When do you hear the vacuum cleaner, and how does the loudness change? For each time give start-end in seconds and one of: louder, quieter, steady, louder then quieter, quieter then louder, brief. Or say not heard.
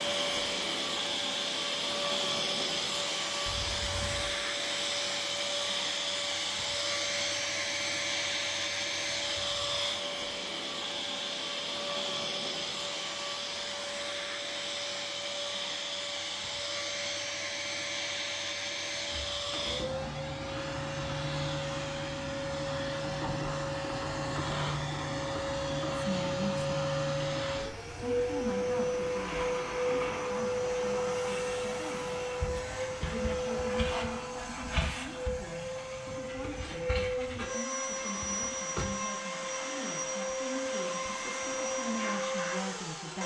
0.0-43.2 steady.